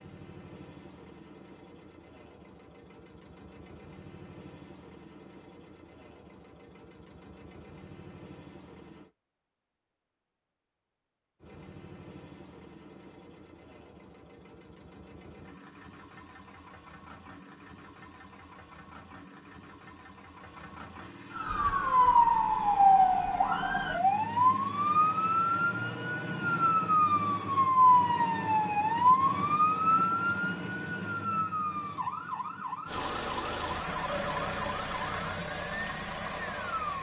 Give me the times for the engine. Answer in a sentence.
The engine can be heard from 0.0 to 9.1 s, from 11.4 to 25.6 s and from 32.9 to 36.9 s.